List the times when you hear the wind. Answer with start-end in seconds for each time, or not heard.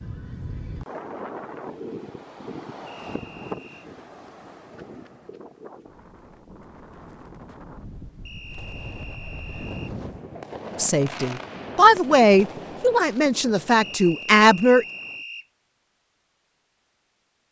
0.0-10.2.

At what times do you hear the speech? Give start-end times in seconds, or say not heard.
10.8-14.8.